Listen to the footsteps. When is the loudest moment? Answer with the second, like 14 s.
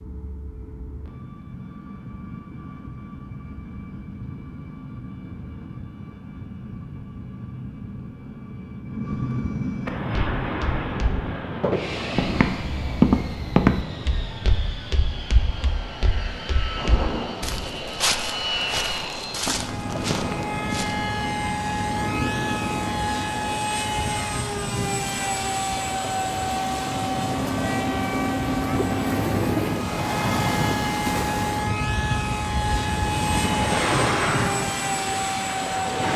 13 s.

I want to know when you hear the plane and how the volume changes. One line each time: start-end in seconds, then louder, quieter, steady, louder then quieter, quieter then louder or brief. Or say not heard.
0.0-36.1 louder.